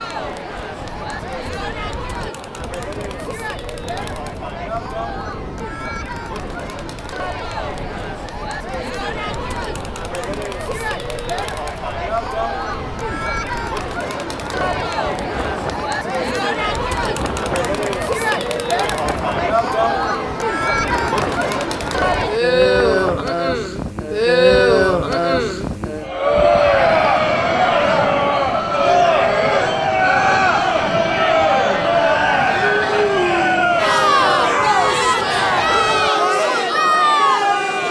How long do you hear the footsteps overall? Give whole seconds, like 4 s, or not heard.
not heard.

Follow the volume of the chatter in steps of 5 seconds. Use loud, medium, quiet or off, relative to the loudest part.
quiet, quiet, medium, medium, loud, loud, loud, loud.